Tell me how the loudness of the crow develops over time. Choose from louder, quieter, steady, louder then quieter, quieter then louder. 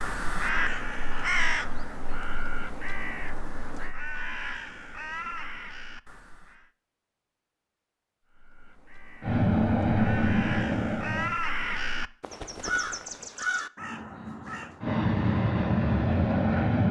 quieter then louder.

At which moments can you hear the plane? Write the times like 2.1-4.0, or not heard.
9.2-11.3, 14.8-16.8.